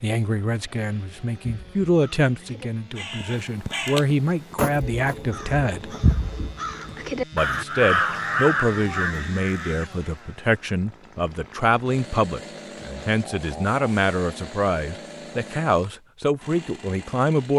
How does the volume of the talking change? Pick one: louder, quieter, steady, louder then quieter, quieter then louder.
steady.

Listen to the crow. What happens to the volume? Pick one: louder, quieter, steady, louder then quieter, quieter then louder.
louder.